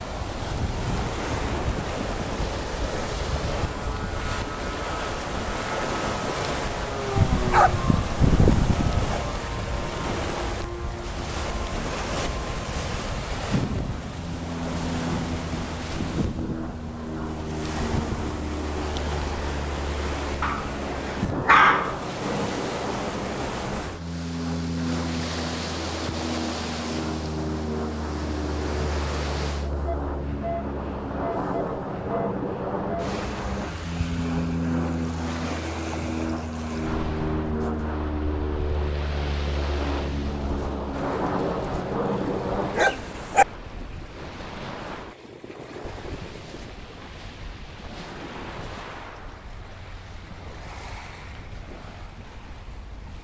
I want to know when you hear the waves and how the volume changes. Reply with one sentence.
The waves can be heard from 0.0 to 53.2 s, getting quieter.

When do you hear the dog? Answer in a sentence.
The dog can be heard from 7.2 to 9.2 s, from 20.4 to 22.1 s and from 42.8 to 43.5 s.